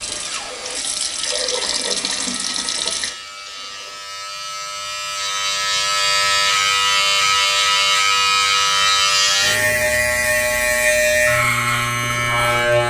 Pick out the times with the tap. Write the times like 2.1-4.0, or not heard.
0.0-4.0.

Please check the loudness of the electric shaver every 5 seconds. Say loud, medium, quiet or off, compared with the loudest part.
quiet, loud, loud.